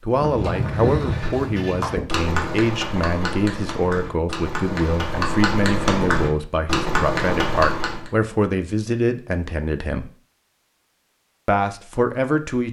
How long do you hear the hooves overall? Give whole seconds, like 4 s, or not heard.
8 s.